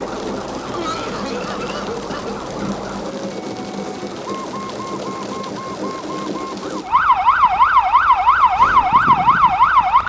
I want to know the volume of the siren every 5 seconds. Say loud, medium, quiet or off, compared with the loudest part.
quiet, loud.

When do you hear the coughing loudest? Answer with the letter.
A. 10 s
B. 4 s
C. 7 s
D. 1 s
D.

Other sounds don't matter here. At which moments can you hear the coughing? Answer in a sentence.
The coughing can be heard from 0.7 to 2.4 s.